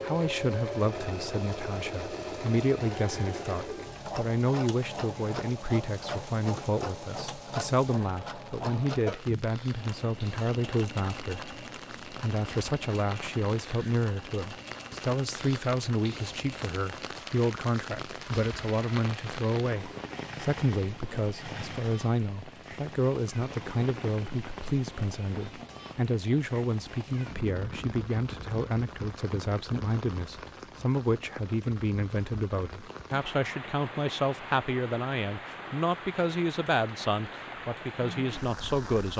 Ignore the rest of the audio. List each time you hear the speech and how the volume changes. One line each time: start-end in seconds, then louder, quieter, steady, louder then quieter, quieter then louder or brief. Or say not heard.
0.0-39.1 steady.